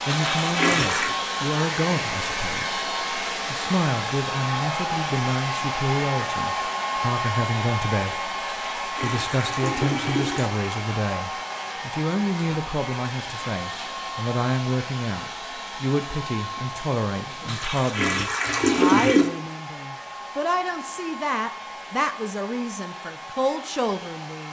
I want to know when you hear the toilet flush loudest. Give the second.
19 s.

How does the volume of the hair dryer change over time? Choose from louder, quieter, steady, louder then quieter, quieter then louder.
quieter.